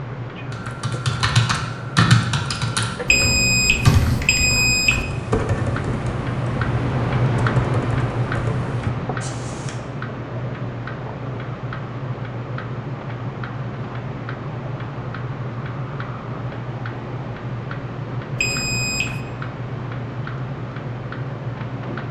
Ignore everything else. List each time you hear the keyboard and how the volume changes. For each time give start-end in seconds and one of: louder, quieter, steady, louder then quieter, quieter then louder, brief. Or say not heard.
0.5-9.8 quieter.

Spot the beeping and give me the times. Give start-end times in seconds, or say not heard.
3.0-5.0, 18.4-19.2.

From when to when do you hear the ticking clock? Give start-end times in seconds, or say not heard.
0.0-22.0.